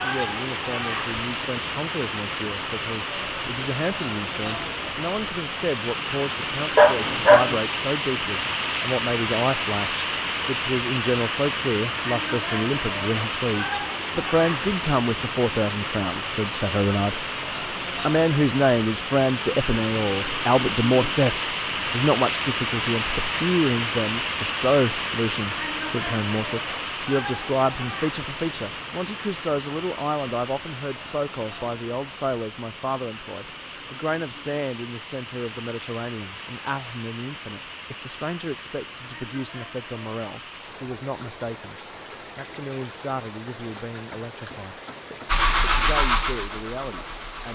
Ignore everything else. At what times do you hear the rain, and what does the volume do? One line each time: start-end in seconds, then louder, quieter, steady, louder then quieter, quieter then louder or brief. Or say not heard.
0.0-47.5 quieter.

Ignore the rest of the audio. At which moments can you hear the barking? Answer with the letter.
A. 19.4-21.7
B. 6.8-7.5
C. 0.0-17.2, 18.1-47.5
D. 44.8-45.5
B.